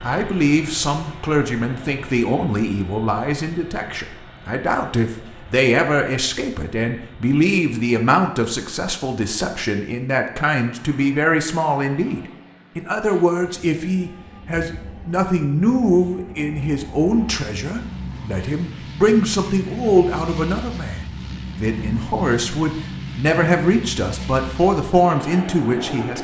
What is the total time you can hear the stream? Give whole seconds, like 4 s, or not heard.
not heard.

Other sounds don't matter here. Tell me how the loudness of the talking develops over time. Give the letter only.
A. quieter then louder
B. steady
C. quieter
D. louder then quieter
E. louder
B.